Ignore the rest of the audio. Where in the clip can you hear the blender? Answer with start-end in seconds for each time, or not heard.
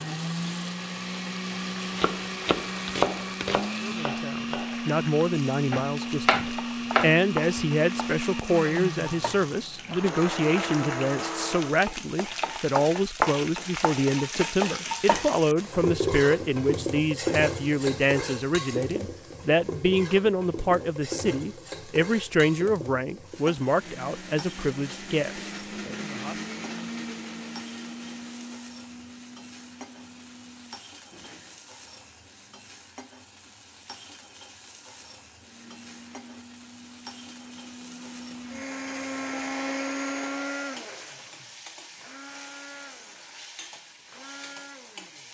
0.0-11.8, 23.6-31.6, 35.4-45.2.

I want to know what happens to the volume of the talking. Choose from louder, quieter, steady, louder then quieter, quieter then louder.
steady.